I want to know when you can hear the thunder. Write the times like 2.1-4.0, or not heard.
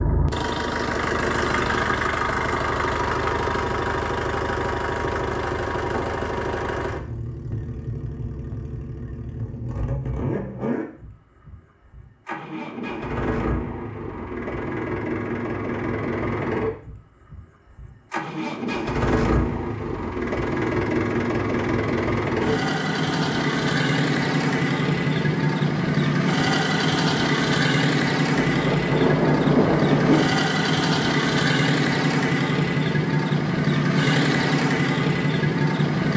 28.4-30.2.